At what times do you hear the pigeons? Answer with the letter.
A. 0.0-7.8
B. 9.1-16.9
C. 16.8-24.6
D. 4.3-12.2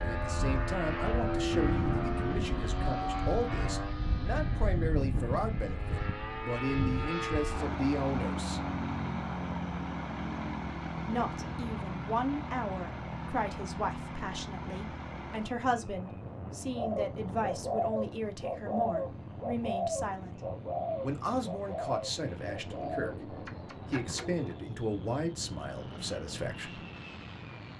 C.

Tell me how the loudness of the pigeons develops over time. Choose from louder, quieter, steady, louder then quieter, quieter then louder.
quieter.